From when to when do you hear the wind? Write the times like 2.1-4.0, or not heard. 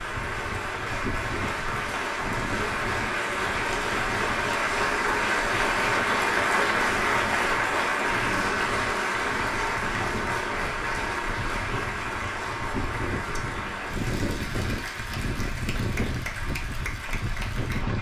0.0-17.9.